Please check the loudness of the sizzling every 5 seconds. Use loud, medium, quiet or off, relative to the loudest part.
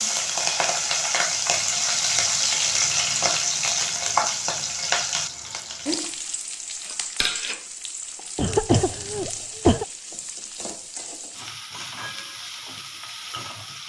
loud, medium, quiet.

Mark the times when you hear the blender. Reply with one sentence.
You can't hear the blender here.